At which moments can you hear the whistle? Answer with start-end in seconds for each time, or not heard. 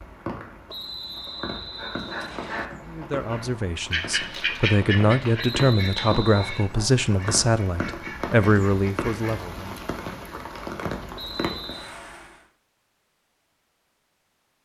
0.7-2.7, 5.3-6.7, 11.2-11.9.